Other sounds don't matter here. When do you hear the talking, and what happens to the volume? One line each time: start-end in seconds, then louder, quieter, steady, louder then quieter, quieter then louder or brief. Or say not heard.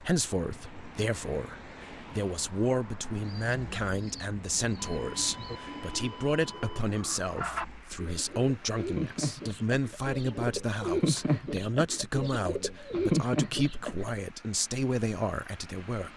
0.0-16.1 steady.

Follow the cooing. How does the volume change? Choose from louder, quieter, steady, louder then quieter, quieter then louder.
louder.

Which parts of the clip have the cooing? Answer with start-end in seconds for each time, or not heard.
3.2-14.2.